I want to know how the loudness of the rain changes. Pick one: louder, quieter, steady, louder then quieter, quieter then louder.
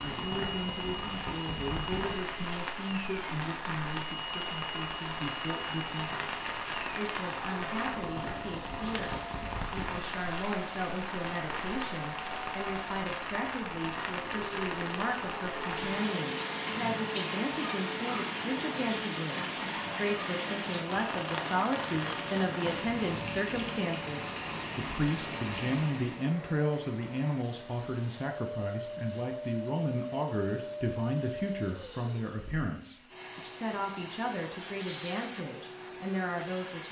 steady.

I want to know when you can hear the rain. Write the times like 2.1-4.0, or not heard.
0.0-26.3.